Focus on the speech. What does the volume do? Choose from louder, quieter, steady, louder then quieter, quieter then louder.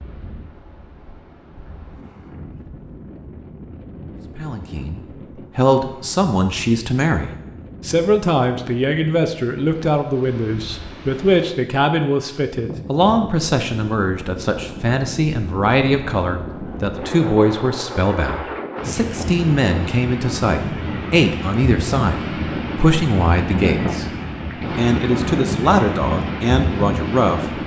steady.